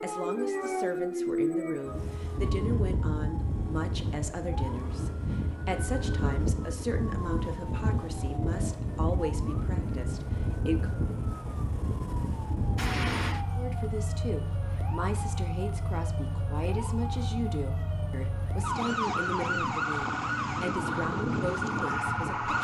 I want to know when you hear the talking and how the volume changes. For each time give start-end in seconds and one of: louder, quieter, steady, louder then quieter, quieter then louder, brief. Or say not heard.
0.0-11.0 steady
13.6-22.5 steady.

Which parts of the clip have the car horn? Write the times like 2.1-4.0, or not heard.
12.8-13.4.